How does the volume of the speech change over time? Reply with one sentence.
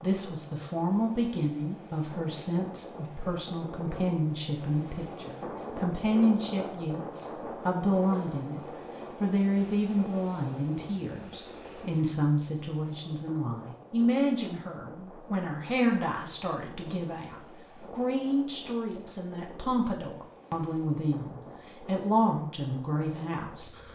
The loudness of the speech stays about the same.